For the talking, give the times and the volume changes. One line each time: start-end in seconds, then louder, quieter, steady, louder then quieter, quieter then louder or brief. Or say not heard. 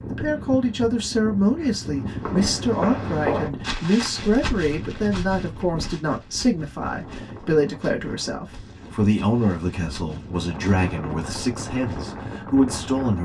0.1-13.2 steady.